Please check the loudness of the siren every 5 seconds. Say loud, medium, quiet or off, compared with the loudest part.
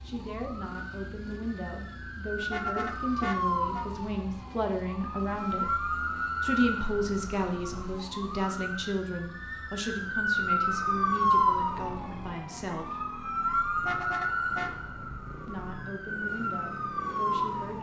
medium, medium, loud, medium.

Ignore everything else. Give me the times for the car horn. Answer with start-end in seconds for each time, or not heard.
2.4-3.9, 13.8-14.7.